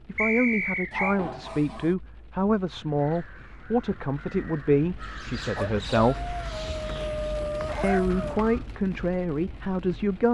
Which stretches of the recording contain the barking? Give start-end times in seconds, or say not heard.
0.9-1.9, 5.5-8.4.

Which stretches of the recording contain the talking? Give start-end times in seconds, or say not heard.
0.1-6.3, 7.8-10.3.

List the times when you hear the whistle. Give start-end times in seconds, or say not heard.
0.1-1.2, 6.8-7.8.